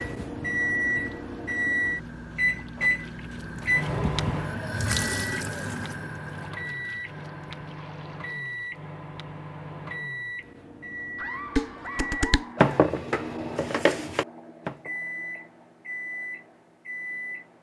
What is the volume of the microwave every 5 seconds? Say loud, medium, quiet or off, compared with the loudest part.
loud, medium, medium, medium.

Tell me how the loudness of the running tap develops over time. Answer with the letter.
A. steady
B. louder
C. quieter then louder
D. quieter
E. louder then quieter
E.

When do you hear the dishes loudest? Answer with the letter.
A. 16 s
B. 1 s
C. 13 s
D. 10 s
C.